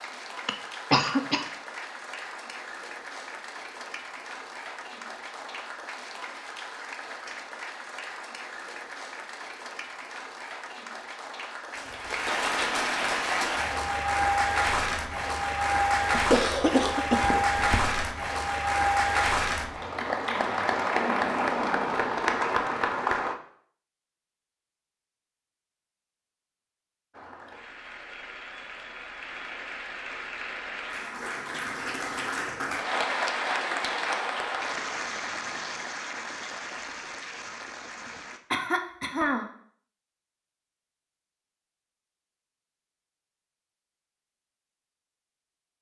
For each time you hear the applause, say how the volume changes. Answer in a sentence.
The applause can be heard from 0.0 to 23.4 s, getting louder; and from 27.1 to 38.4 s, getting louder then quieter.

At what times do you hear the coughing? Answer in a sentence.
The coughing can be heard from 0.5 to 1.4 s, from 16.1 to 18.1 s and from 38.0 to 39.5 s.